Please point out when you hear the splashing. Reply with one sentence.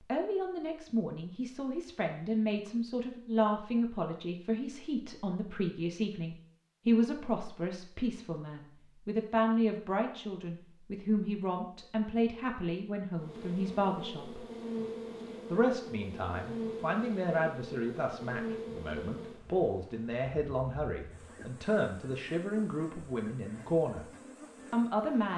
You can't hear the splashing here.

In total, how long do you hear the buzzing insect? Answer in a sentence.
The buzzing insect can be heard for 12 seconds in total.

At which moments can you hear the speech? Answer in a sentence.
The speech can be heard from 0.0 to 14.4 s, from 15.5 to 24.1 s and from 24.7 to 25.3 s.